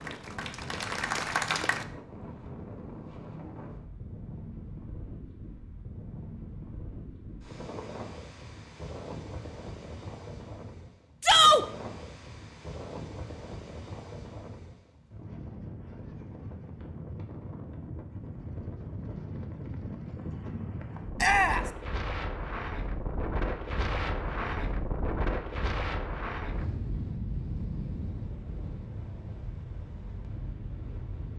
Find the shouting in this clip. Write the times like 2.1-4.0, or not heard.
11.2-11.7, 21.1-21.6.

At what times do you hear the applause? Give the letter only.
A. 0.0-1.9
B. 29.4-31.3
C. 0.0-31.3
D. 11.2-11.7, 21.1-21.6
A.